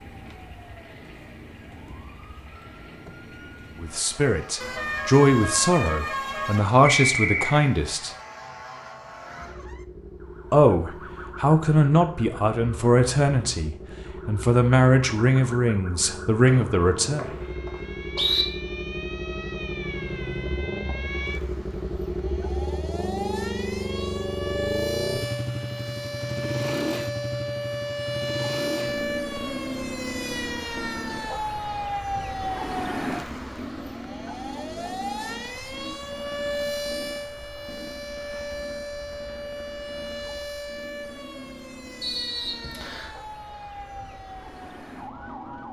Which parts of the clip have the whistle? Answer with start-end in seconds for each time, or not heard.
6.8-7.7, 16.4-18.4, 42.0-43.1.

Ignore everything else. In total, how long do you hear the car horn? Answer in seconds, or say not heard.
2 s.